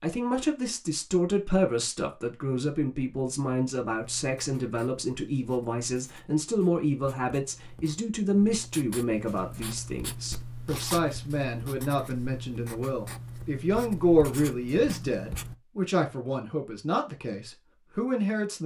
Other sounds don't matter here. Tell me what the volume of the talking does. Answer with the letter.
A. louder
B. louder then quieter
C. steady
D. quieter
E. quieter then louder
C.